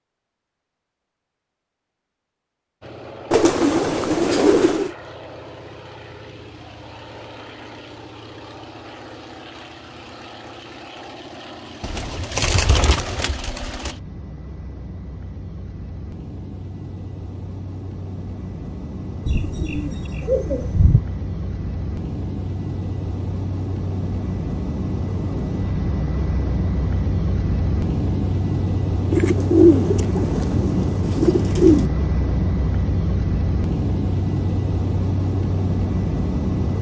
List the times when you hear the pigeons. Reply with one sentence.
You can hear the pigeons from 3.3 to 4.9 s, from 11.8 to 13.9 s, from 19.2 to 21.0 s and from 29.1 to 31.9 s.